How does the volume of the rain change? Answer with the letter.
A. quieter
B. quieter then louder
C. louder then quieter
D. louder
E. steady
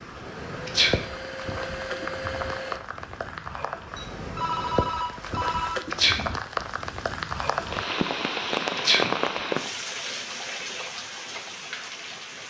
C.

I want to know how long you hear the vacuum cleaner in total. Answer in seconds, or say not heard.
3 s.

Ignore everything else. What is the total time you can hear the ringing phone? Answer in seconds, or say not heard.
2 s.